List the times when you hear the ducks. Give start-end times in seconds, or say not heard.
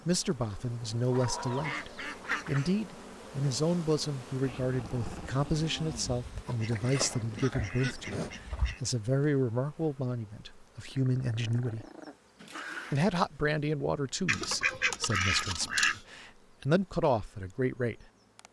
1.1-2.7, 6.5-8.8, 14.2-16.0.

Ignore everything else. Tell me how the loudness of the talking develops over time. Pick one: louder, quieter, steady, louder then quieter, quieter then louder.
steady.